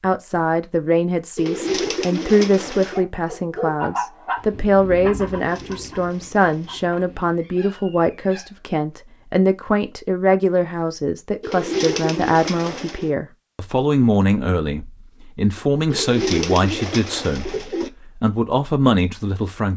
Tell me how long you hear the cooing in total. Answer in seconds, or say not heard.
7 s.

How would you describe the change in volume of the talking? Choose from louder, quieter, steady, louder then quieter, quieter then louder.
steady.